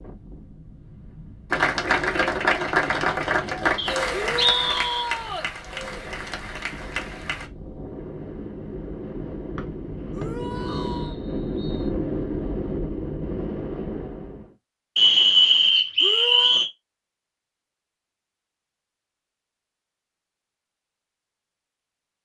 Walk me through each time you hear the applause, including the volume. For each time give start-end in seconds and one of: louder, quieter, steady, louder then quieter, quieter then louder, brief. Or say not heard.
1.5-7.5 quieter.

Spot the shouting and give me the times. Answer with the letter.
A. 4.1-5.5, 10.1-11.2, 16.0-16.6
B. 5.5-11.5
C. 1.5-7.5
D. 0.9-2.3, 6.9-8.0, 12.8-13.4
A.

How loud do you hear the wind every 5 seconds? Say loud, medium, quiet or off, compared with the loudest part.
quiet, medium, loud, off, off.